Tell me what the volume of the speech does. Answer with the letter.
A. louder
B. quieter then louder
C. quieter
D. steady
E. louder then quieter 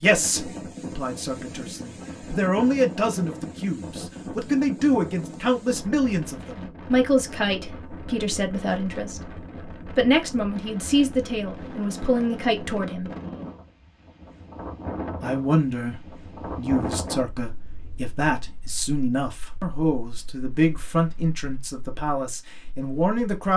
D.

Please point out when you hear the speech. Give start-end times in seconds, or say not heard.
0.0-13.1, 15.2-23.5.